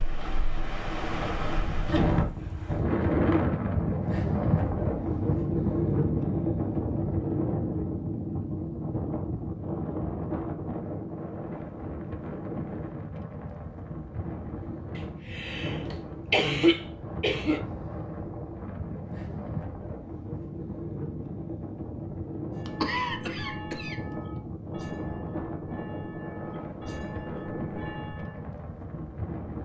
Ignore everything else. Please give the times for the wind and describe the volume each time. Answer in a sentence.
You can hear the wind from 0.0 to 29.6 s, getting quieter.